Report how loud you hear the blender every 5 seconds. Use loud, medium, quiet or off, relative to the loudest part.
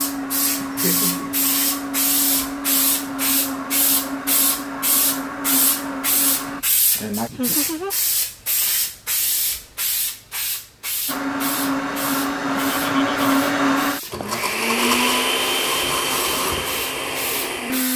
medium, medium, loud, loud.